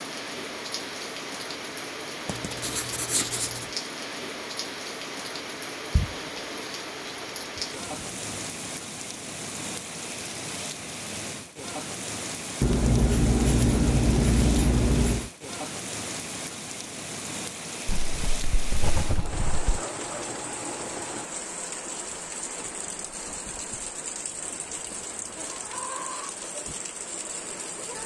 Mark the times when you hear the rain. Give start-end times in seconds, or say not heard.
0.0-28.0.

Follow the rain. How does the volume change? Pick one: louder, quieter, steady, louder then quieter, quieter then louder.
steady.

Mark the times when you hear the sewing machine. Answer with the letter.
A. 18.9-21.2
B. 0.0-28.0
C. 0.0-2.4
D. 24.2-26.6
A.